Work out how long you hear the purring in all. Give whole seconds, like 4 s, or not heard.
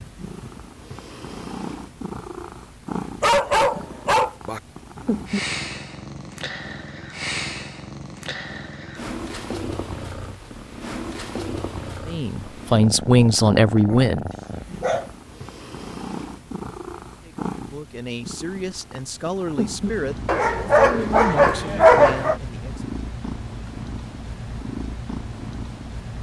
26 s.